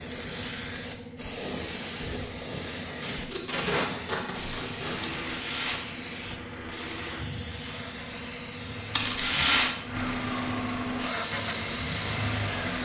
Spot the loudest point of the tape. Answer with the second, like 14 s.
4 s.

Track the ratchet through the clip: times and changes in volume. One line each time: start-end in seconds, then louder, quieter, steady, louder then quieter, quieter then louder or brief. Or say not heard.
not heard.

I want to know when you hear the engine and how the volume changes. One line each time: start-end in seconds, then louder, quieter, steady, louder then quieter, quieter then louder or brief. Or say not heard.
4.8-12.8 louder.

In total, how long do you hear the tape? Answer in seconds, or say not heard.
2 s.